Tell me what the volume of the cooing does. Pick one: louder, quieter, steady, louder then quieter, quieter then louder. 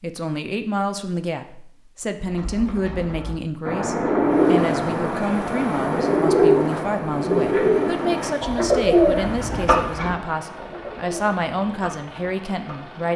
quieter.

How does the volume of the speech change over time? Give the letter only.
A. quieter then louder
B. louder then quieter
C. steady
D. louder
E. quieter
C.